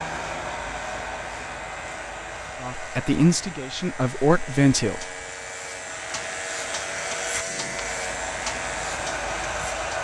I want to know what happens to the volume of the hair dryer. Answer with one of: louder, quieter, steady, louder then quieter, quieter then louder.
quieter then louder.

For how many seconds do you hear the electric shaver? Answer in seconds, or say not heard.
10 s.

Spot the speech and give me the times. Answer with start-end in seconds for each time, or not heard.
2.6-5.0.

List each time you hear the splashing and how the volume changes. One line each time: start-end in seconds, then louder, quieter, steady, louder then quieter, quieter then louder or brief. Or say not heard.
not heard.